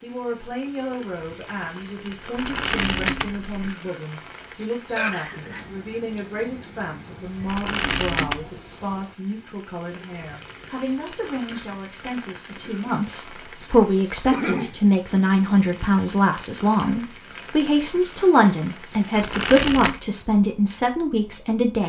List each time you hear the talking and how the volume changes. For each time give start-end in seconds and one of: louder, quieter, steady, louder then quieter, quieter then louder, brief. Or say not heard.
0.0-21.8 louder.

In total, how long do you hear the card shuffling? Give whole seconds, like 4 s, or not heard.
3 s.